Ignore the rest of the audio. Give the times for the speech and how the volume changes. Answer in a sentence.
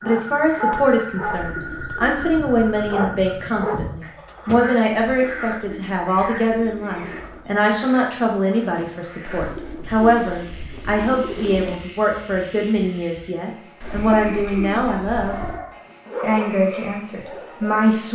The speech can be heard from 0.0 to 15.3 s, at a steady volume; and briefly from 16.2 to 18.1 s.